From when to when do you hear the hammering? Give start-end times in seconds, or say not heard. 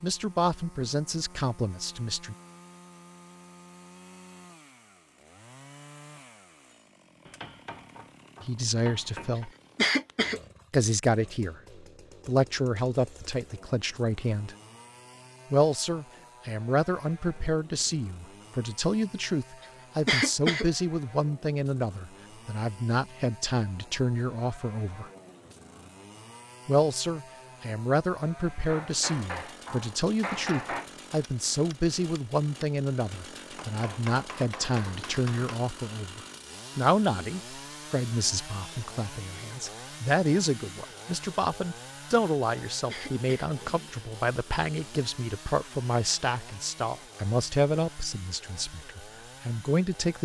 7.2-9.5, 28.6-30.9, 33.5-35.6.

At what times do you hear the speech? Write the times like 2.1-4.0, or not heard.
0.0-2.4, 8.4-9.5, 10.7-14.6, 15.5-25.1, 26.6-50.2.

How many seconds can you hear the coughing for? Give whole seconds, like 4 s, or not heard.
2 s.